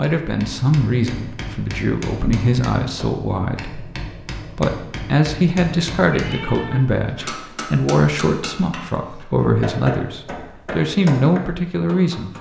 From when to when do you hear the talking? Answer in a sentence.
You can hear the talking from 0.0 to 12.3 s.